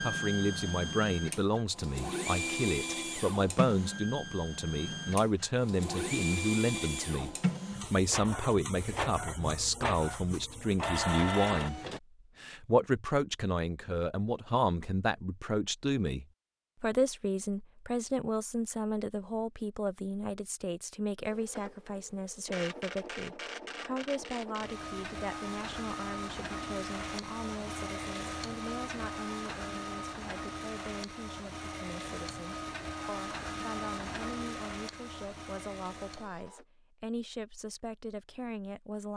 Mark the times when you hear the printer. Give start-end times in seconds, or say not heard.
0.0-12.0, 21.2-36.6.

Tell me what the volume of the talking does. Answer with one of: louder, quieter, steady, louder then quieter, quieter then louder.
quieter.